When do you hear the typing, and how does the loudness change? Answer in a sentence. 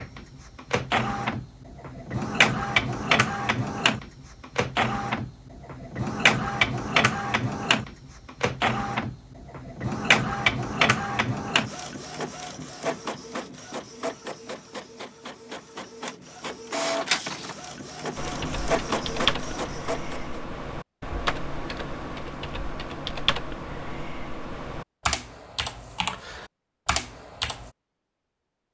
You can hear the typing from 18.1 to 27.7 s, at a steady volume.